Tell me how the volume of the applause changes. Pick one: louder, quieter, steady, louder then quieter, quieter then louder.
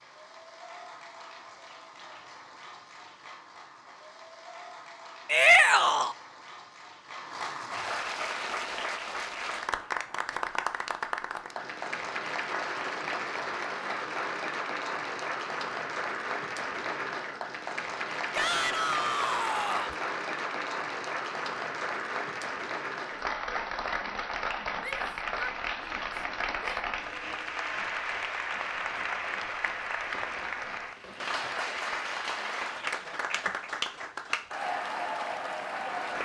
louder.